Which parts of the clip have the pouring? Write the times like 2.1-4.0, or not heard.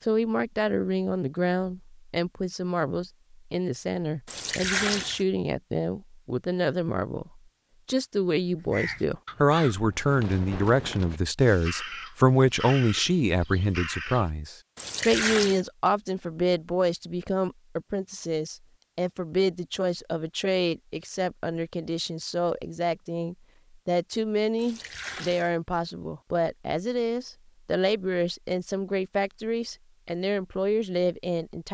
4.2-5.2, 14.8-15.6, 24.6-25.5.